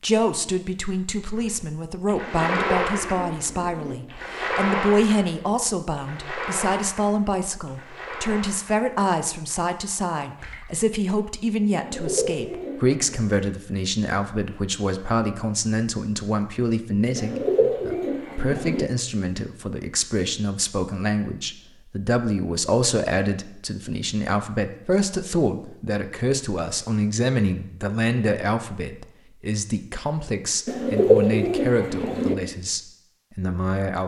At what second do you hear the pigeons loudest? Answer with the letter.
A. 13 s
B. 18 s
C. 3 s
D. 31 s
D.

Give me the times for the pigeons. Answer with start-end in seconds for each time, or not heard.
2.2-4.0, 11.8-13.2, 17.1-18.9, 30.6-32.4.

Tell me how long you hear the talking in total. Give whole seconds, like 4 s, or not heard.
34 s.